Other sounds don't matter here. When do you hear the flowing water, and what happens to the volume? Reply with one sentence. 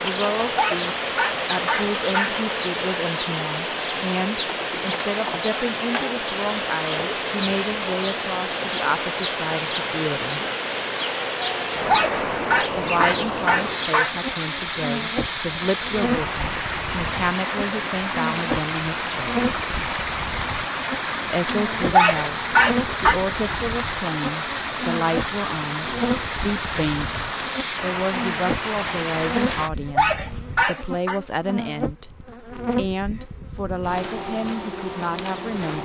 The flowing water can be heard from 0.0 to 29.7 s, at a steady volume.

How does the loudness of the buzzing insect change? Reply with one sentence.
The loudness of the buzzing insect stays about the same.